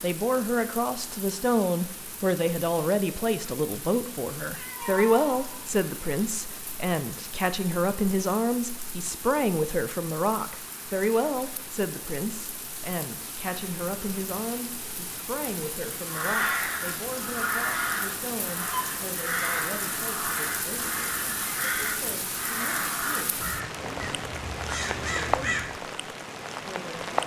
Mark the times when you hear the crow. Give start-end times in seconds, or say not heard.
16.1-25.8.